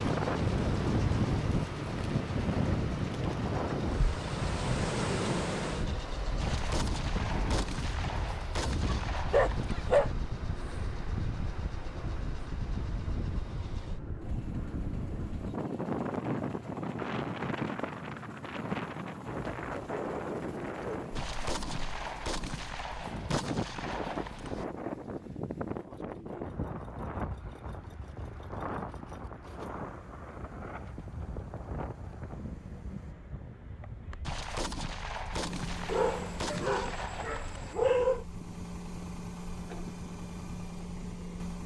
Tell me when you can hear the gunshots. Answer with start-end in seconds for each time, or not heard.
6.4-9.9, 21.1-24.6, 34.2-37.8.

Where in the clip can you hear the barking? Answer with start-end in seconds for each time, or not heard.
8.7-10.1, 35.9-38.2.